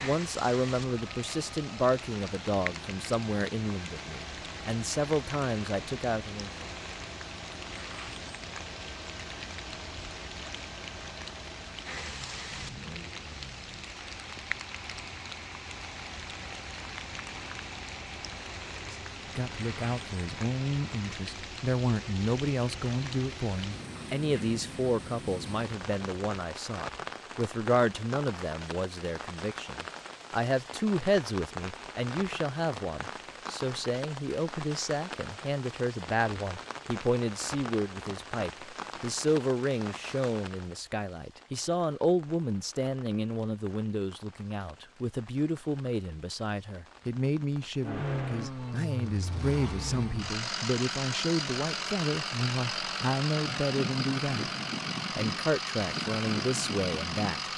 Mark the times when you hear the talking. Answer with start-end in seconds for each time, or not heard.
0.0-6.7, 18.9-54.5, 55.1-57.5.